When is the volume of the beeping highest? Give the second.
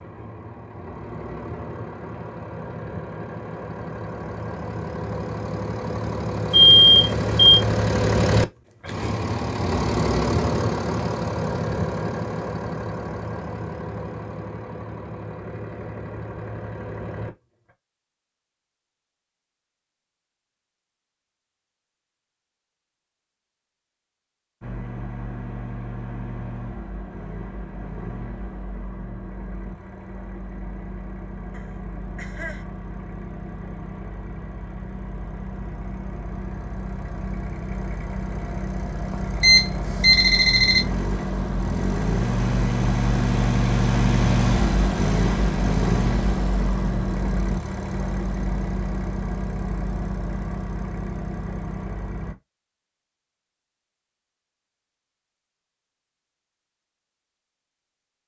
7 s.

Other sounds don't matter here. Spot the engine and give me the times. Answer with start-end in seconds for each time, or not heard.
0.0-17.7, 24.6-52.4.